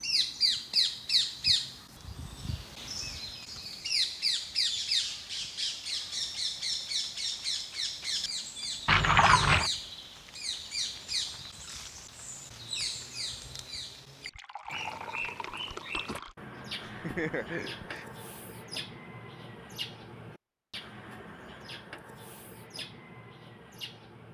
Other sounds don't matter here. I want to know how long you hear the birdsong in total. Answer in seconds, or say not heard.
24 s.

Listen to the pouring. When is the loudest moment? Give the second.
9 s.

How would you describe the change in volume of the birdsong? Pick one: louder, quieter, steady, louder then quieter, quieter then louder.
quieter.